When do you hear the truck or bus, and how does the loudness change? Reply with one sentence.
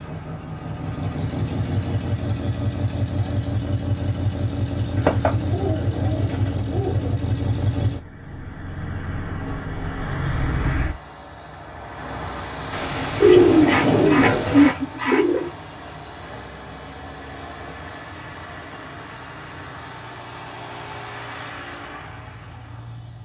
You can hear the truck or bus from 0.0 to 23.2 s, getting quieter.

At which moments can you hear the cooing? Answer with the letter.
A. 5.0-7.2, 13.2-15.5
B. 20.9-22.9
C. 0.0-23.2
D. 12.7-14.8
A.